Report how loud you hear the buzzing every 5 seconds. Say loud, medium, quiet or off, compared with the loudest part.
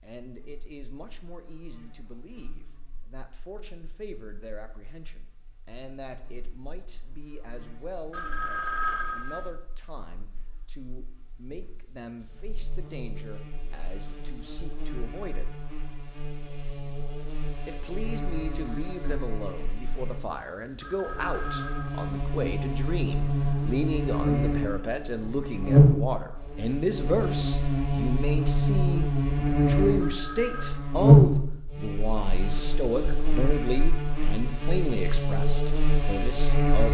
quiet, quiet, quiet, quiet, medium, loud, loud, medium.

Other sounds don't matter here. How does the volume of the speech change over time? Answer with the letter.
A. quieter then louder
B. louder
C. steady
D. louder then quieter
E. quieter
B.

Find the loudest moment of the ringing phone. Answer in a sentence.
The volume of the ringing phone peaks at 9 seconds.